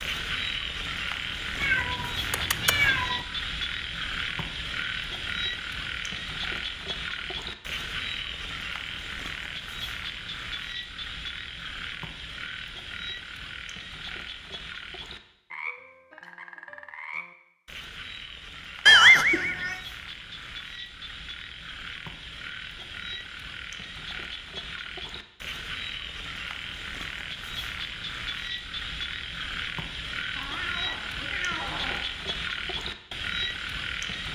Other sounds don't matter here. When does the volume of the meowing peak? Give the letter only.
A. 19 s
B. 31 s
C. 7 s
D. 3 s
A.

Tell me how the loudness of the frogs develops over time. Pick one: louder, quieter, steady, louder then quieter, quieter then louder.
quieter then louder.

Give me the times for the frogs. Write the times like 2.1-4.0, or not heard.
0.0-34.3.